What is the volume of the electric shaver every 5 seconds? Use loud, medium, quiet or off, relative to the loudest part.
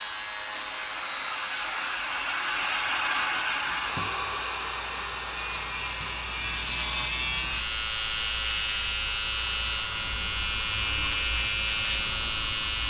medium, loud, loud.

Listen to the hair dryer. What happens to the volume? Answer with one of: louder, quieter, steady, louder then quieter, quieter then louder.
quieter.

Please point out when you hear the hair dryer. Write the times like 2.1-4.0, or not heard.
0.0-12.8.